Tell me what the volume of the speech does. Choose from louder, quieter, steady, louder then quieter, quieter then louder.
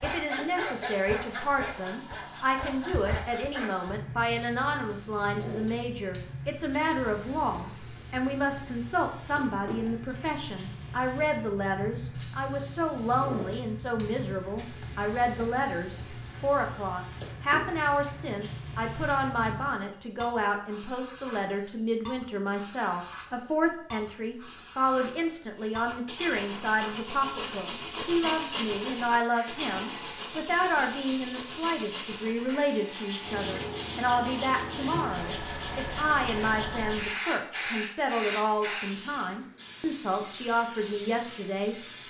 steady.